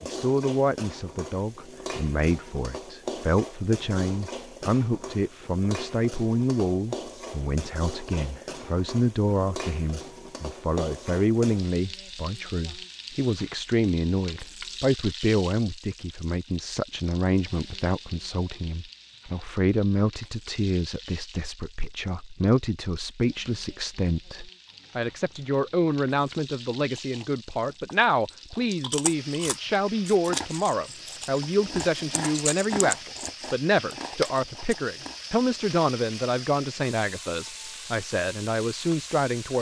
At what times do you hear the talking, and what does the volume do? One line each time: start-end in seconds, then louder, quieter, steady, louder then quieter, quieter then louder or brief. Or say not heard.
0.0-39.5 steady.